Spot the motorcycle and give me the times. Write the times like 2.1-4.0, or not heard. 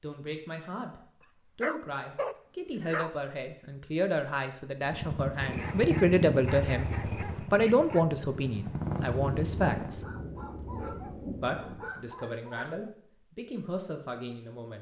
4.8-9.9.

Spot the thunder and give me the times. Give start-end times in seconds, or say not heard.
9.1-11.9.